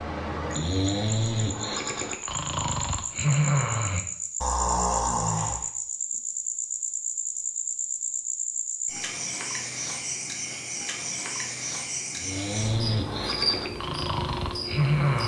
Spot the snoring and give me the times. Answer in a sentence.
The snoring can be heard from 0.0 to 5.7 s and from 12.2 to 15.2 s.